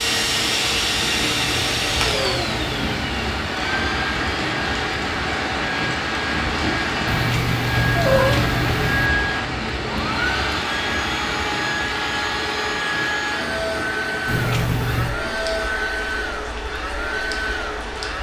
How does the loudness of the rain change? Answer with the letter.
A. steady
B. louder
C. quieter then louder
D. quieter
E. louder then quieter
D.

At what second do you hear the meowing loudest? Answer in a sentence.
The loudest moment of the meowing is at 8 seconds.